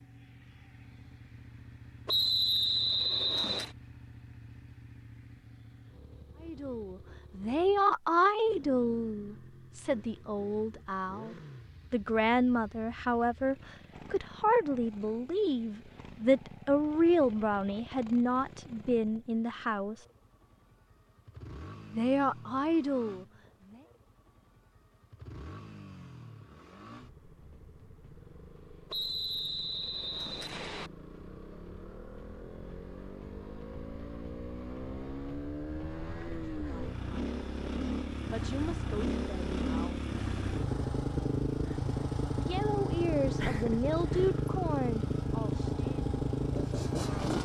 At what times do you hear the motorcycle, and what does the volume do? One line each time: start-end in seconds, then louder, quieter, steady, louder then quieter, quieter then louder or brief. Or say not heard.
0.0-47.4 louder.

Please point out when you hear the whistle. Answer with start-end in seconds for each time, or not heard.
2.0-3.7, 28.9-30.9.